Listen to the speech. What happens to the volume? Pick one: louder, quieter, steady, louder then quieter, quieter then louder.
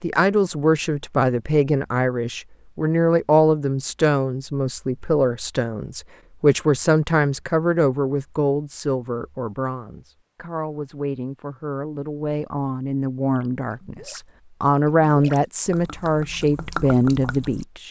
quieter then louder.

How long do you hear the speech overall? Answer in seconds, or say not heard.
18 s.